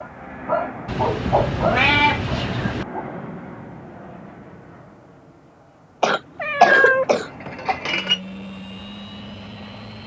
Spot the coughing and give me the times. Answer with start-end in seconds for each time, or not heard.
6.0-7.8.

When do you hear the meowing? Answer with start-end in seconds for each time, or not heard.
0.8-2.9, 6.3-8.2.